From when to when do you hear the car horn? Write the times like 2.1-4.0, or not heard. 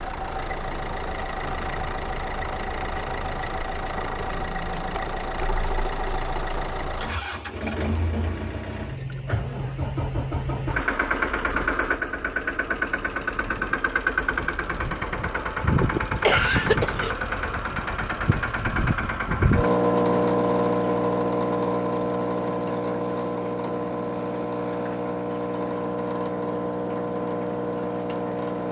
not heard.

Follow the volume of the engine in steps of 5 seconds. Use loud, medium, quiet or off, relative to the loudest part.
medium, medium, loud, loud, loud, loud.